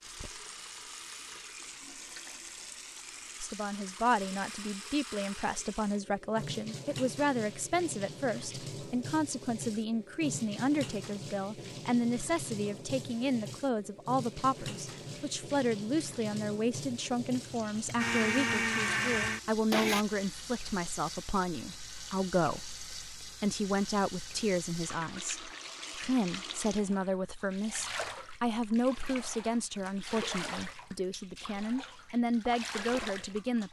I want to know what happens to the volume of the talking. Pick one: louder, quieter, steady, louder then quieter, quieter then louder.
steady.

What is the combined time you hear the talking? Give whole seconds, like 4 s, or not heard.
30 s.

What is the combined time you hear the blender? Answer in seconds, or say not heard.
2 s.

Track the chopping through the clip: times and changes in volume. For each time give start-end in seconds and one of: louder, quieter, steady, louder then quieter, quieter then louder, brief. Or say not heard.
not heard.